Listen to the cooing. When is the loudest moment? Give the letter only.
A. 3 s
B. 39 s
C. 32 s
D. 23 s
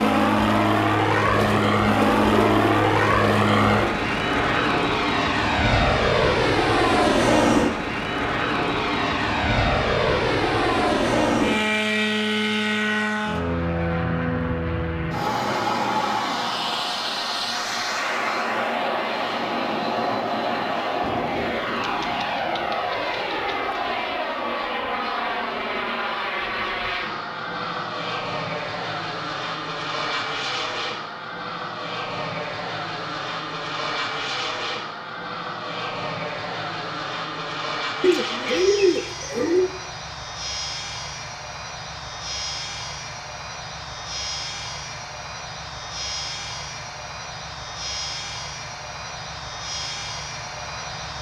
B.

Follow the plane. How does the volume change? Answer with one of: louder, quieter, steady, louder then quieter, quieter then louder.
quieter.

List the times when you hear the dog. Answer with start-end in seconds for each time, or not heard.
not heard.